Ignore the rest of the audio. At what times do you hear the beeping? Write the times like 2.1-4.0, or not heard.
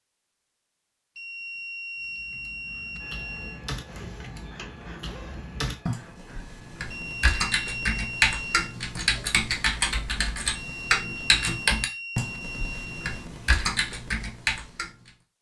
1.1-3.6, 6.9-8.8, 10.6-13.2.